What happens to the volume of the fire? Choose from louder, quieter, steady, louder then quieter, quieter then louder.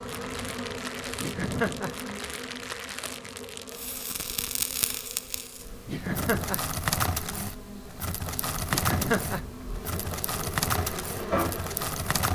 louder.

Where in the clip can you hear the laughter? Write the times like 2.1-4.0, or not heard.
1.1-1.9, 5.8-6.7, 8.7-9.4.